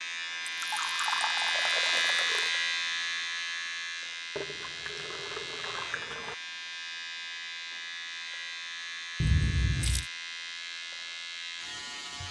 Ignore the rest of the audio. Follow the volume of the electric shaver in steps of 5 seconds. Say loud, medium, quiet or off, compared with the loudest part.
loud, medium, medium.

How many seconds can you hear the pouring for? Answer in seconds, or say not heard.
5 s.